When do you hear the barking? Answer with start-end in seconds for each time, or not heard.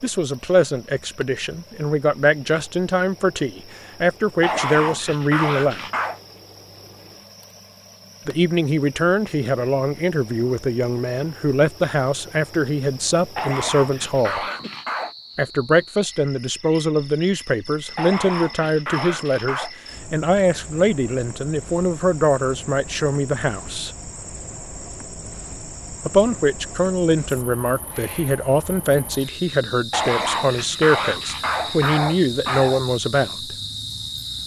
4.4-6.2, 13.3-15.2, 17.9-19.7, 29.9-32.8.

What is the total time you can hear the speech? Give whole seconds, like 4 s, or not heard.
28 s.